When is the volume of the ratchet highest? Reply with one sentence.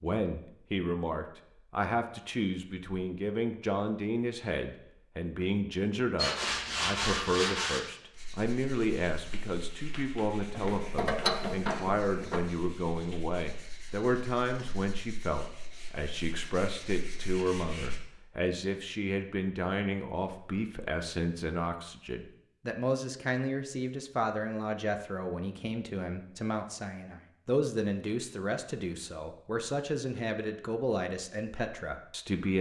The loudest moment of the ratchet is at 11 seconds.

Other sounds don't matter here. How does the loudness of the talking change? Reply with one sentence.
The loudness of the talking stays about the same.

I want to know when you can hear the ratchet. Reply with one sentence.
The ratchet can be heard from 10.5 to 12.4 s.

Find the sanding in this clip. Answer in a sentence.
The sanding can be heard from 6.2 to 18.0 s.